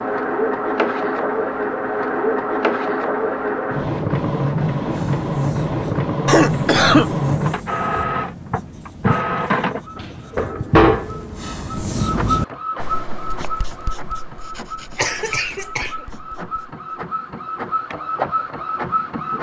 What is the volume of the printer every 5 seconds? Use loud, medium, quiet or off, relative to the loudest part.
loud, loud, loud, medium.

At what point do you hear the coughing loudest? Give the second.
7 s.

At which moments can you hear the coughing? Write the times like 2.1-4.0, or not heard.
6.2-7.1, 14.9-15.9.